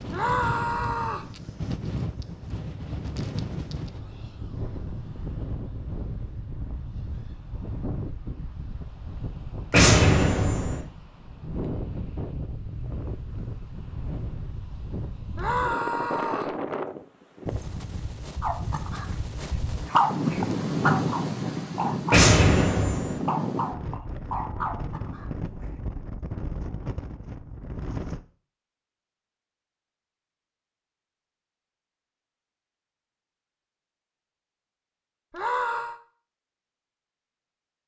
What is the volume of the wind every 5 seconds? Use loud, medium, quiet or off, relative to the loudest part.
medium, medium, medium, medium, loud, medium, off, off.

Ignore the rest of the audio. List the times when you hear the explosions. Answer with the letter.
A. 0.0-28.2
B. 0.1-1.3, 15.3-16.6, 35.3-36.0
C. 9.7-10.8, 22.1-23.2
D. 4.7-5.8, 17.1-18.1
C.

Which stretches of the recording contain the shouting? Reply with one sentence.
You can hear the shouting from 0.1 to 1.3 s, from 15.3 to 16.6 s and from 35.3 to 36.0 s.